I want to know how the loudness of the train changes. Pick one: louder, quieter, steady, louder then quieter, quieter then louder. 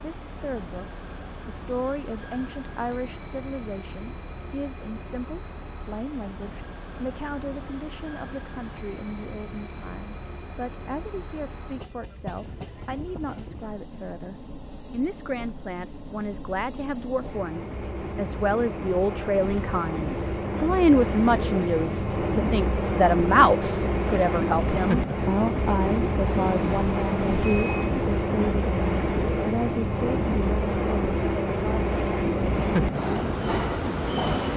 louder.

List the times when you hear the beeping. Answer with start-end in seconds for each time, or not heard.
26.2-27.9.